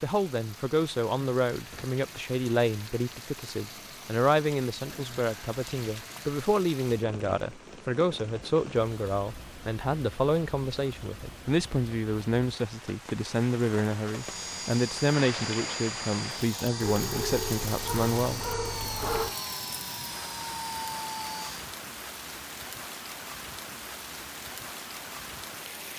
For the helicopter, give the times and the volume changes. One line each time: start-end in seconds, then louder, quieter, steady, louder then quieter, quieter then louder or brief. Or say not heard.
14.1-21.7 steady.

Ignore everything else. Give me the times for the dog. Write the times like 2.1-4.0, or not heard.
16.8-19.4.